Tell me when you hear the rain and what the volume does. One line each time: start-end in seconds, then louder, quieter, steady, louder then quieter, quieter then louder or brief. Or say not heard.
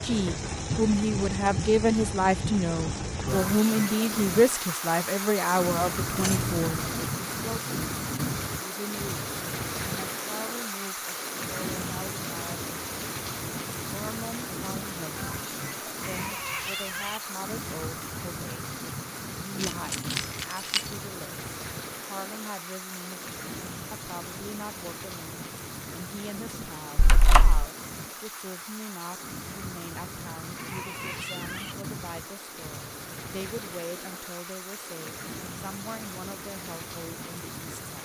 0.0-38.0 quieter.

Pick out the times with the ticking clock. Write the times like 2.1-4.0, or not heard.
not heard.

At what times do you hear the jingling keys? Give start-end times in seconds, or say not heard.
6.1-7.1, 19.6-20.9, 26.9-27.6.